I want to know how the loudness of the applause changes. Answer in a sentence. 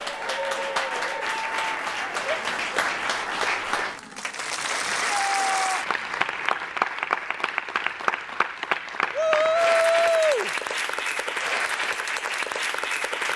The loudness of the applause stays about the same.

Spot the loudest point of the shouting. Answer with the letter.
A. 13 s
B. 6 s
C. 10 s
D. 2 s
C.